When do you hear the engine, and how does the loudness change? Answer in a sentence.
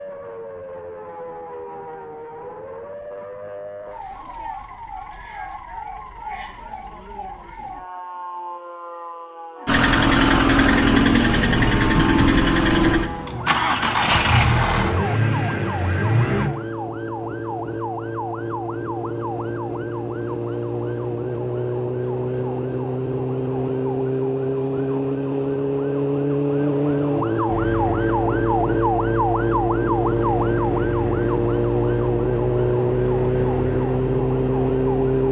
The engine can be heard from 9.7 to 16.5 s, getting quieter; and from 27.4 to 35.2 s, at a steady volume.